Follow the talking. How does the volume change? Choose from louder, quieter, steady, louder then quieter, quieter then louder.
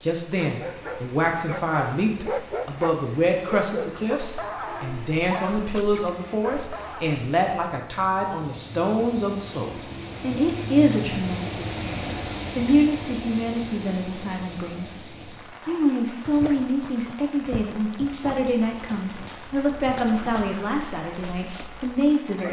steady.